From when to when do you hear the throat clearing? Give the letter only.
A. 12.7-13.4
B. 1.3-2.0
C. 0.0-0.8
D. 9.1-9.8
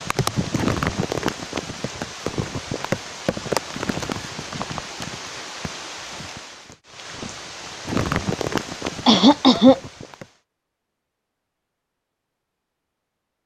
D.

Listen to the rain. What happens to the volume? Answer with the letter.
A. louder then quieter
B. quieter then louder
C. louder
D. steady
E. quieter
B.